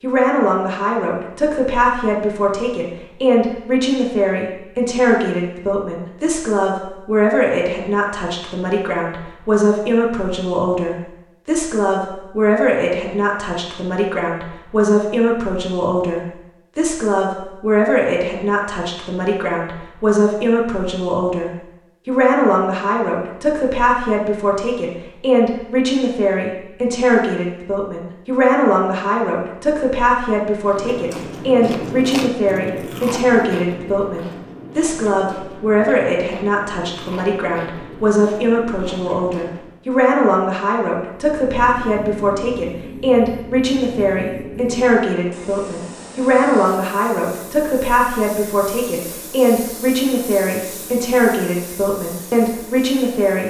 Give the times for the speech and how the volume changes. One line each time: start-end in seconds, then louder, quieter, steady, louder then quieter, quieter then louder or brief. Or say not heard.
0.0-53.4 steady.